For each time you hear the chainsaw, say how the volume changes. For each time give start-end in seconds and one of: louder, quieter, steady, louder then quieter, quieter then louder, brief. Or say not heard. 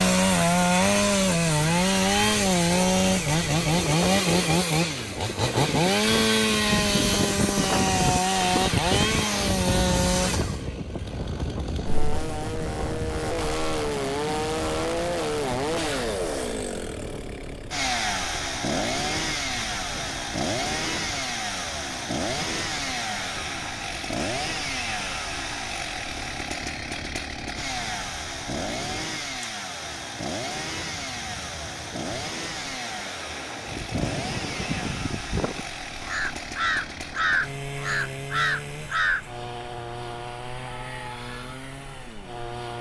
0.0-42.7 quieter.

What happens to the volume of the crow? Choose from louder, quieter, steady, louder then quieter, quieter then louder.
louder.